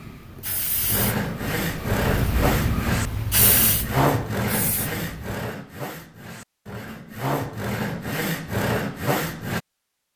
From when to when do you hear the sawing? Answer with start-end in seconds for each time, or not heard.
0.8-9.6.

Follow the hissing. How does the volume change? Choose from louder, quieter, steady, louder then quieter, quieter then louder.
louder then quieter.